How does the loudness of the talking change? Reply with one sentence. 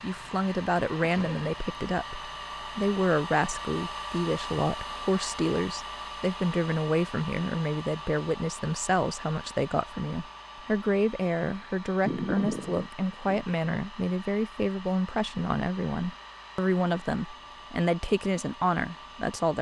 The loudness of the talking stays about the same.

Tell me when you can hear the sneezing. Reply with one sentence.
You can hear the sneezing from 1.0 to 1.4 s and from 12.1 to 13.4 s.